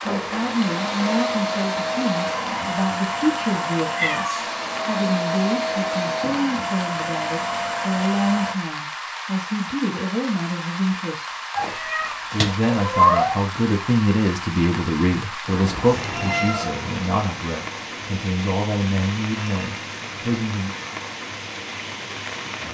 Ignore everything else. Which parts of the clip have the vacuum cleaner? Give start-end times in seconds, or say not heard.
0.0-8.6.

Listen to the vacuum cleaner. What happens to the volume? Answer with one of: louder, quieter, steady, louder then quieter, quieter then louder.
steady.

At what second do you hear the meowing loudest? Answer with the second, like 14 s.
13 s.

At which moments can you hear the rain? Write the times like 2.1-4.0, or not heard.
0.0-22.6.